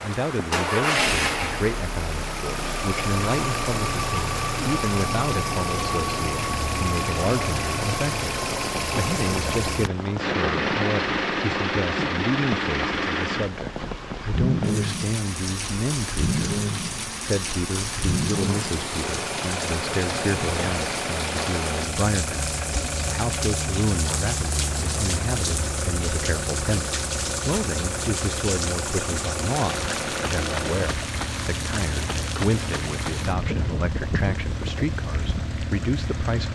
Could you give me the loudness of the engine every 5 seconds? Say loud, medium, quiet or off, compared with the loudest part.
loud, loud, loud, loud, medium, medium, medium, medium.